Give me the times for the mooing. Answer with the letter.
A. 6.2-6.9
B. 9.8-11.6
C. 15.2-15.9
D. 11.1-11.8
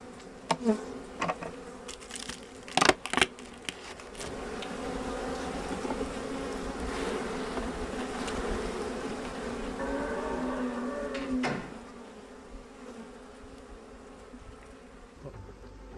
B.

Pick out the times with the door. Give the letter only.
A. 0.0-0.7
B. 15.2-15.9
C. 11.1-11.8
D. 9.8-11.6
C.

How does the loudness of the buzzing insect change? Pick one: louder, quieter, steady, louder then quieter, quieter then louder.
quieter.